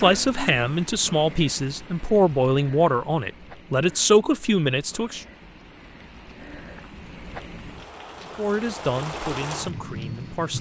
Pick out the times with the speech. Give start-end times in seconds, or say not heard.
0.0-5.2, 8.2-10.5.